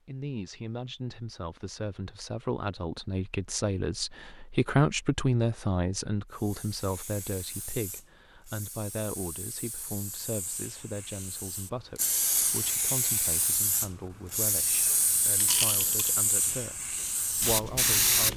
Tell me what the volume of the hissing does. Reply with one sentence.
The loudness of the hissing goes up.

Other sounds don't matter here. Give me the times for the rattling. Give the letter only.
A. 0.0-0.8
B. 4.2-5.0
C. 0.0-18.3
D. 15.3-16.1
D.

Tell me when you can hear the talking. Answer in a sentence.
The talking can be heard from 0.0 to 18.3 s.